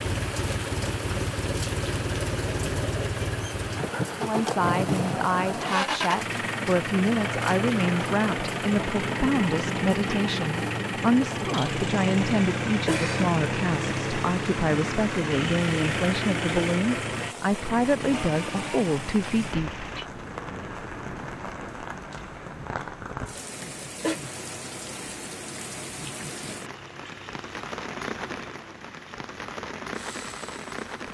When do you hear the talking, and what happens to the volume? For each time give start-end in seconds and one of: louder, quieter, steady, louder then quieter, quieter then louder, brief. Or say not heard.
4.2-19.9 steady.